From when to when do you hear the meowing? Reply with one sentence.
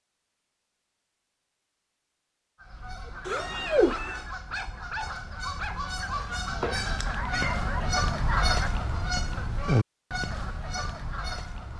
You can hear the meowing from 3.2 to 4.2 s and from 6.5 to 8.1 s.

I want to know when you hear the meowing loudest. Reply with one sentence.
The volume of the meowing peaks at 4 seconds.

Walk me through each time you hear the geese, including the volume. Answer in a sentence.
The geese can be heard from 2.5 to 11.7 s, getting louder.